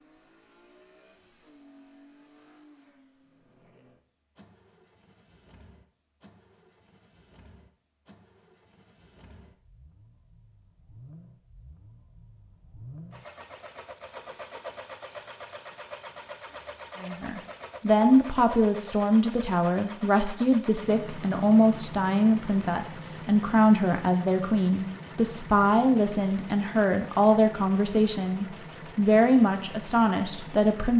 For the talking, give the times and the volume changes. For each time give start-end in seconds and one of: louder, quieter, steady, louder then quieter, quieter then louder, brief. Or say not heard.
17.0-30.9 steady.